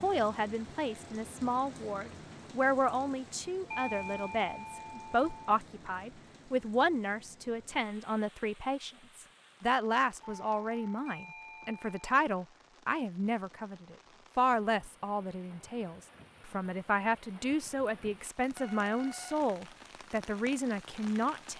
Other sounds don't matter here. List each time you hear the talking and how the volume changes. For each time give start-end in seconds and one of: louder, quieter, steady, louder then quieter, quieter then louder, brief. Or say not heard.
0.0-21.5 steady.